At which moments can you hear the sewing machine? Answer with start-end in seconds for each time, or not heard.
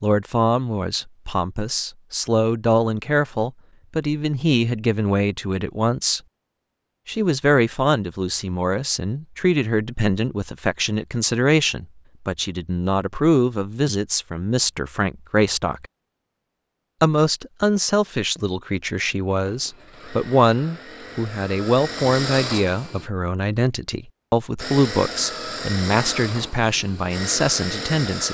19.4-23.1, 24.6-28.2.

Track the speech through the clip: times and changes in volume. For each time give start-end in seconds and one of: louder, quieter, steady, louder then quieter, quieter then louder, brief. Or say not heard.
0.0-6.2 steady
7.0-15.8 steady
17.0-28.2 steady.